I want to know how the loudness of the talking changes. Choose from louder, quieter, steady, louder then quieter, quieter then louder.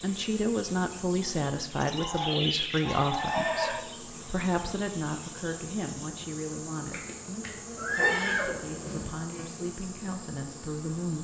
quieter.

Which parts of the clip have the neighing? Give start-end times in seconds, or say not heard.
3.1-3.9, 7.8-9.2.